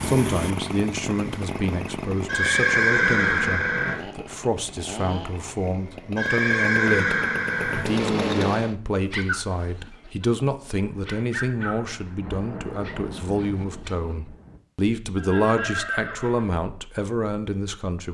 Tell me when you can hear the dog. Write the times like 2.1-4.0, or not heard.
9.1-13.9.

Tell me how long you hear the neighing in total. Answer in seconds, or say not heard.
5 s.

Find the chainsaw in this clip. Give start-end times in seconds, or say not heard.
0.0-8.8.